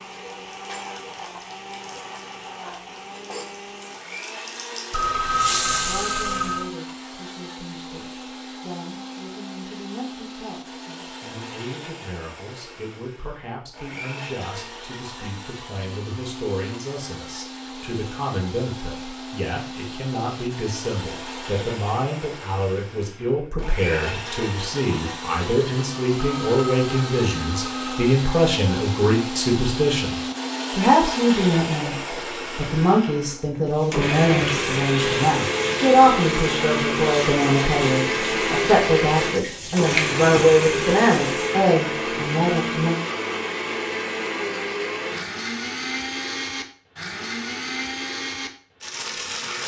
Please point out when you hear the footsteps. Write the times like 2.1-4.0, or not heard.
not heard.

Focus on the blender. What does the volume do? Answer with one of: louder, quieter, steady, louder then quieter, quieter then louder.
louder.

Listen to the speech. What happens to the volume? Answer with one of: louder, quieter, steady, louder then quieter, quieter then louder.
louder.